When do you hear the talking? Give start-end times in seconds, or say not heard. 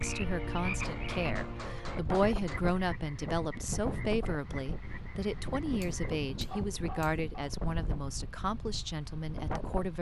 0.0-9.9.